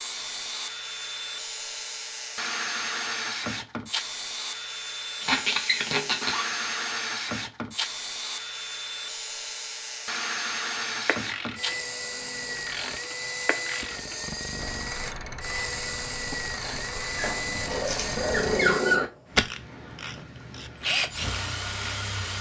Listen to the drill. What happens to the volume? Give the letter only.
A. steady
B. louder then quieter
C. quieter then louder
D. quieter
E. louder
A.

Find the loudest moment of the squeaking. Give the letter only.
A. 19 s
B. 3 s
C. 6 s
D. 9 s
A.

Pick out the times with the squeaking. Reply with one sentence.
The squeaking can be heard from 5.2 to 6.6 s and from 17.1 to 19.1 s.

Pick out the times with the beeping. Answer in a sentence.
You can't hear the beeping here.